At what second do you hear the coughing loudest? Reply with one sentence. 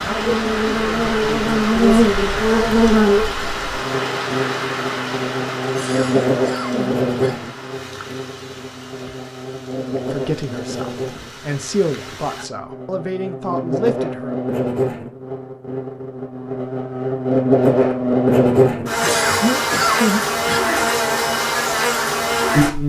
The loudest moment of the coughing is at 20 seconds.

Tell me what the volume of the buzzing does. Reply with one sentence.
The loudness of the buzzing goes down, then up.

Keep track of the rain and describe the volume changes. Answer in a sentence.
The loudness of the rain goes down.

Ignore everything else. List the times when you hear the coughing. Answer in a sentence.
The coughing can be heard from 5.6 to 7.3 s and from 18.9 to 20.6 s.